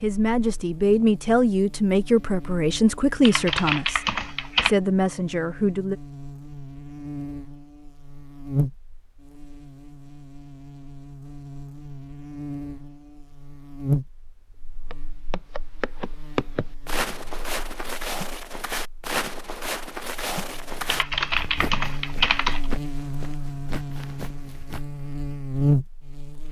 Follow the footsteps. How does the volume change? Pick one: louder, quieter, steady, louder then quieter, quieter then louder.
quieter.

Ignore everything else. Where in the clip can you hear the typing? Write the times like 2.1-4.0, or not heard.
3.2-4.8, 20.9-22.6.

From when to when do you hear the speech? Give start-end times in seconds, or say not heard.
0.0-6.0.